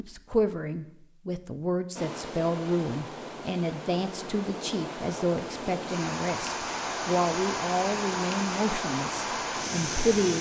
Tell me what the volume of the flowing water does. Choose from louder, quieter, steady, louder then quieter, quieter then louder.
louder.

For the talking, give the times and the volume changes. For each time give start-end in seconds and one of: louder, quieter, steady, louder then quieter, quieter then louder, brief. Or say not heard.
0.0-10.3 steady.